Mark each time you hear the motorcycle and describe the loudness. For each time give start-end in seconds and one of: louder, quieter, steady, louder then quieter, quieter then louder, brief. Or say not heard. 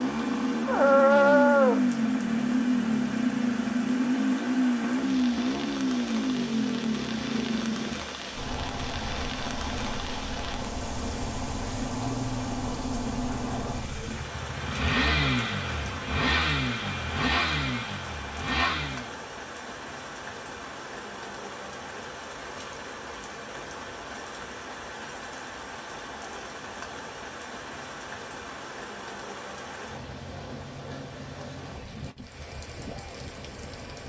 0.0-19.1 quieter then louder.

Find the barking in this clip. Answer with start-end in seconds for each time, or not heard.
0.7-1.8.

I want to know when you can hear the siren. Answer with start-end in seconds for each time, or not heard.
not heard.